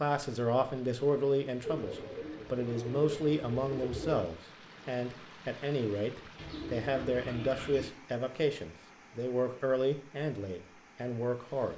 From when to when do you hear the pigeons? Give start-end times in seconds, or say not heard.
1.6-4.2, 6.3-7.9.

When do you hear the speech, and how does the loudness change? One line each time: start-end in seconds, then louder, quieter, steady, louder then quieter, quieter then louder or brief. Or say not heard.
0.0-11.7 steady.